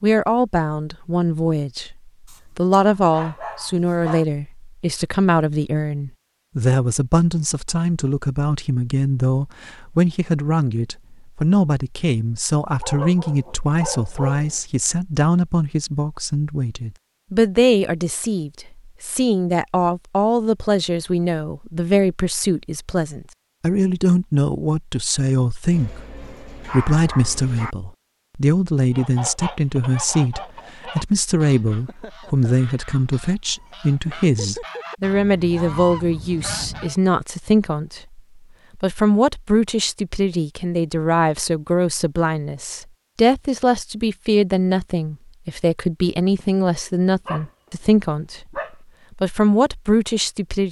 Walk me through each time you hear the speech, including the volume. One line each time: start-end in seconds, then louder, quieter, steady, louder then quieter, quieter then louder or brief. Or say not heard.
0.0-50.6 steady.